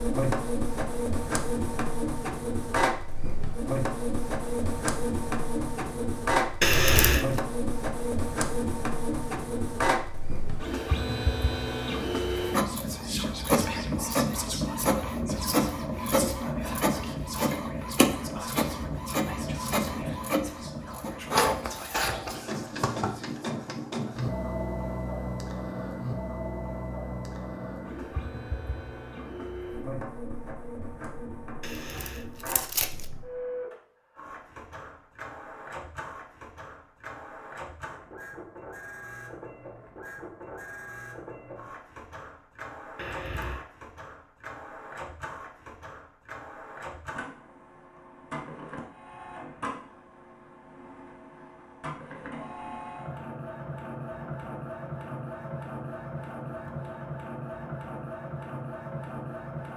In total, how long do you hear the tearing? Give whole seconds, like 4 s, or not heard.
3 s.